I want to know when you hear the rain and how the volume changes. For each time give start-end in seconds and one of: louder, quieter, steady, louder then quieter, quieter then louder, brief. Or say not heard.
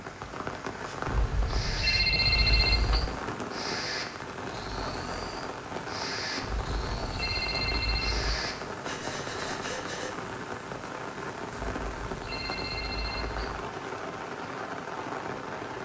0.0-15.7 steady.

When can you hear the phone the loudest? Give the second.
2 s.